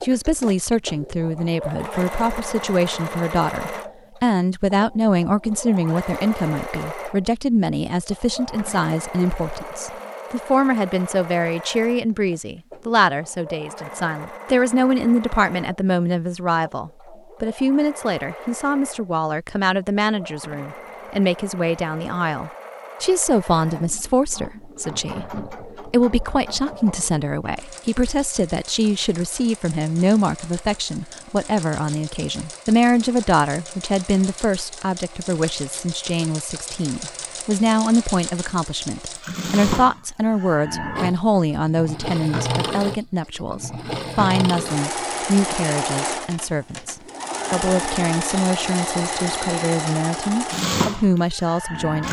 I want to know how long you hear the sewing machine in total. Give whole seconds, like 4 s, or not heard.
52 s.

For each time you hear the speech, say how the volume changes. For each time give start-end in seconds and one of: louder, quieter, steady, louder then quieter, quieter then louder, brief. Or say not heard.
0.0-52.0 steady.